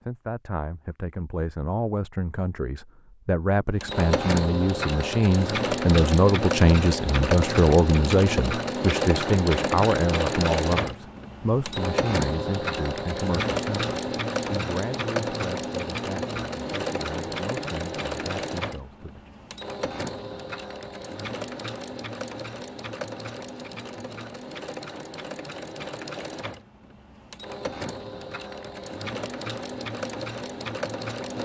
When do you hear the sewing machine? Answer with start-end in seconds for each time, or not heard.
3.8-31.4.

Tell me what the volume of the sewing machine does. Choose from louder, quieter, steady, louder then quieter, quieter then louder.
quieter.